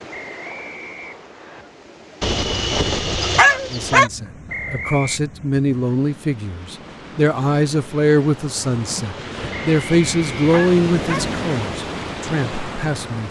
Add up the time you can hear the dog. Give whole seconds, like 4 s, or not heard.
4 s.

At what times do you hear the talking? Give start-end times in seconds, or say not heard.
3.7-13.2.